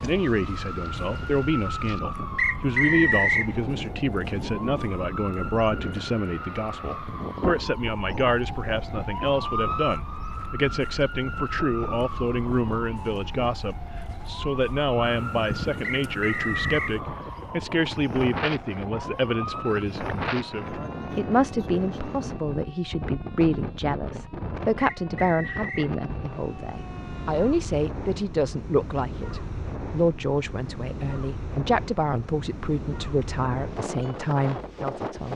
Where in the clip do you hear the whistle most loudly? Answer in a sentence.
The loudest moment of the whistle is at 3 seconds.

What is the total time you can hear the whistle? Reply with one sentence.
The whistle can be heard for 3 seconds in total.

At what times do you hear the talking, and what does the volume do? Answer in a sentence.
The talking can be heard from 0.0 to 35.3 s, at a steady volume.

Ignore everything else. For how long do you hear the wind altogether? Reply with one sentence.
You can hear the wind for 35 seconds altogether.